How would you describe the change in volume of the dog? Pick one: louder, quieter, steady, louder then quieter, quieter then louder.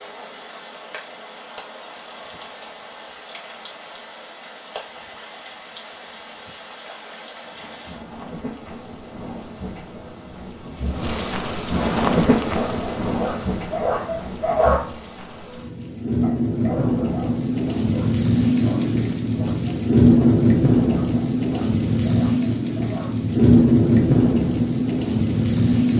quieter.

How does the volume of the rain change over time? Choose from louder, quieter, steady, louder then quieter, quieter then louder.
louder.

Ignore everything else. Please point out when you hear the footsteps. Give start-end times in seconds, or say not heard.
not heard.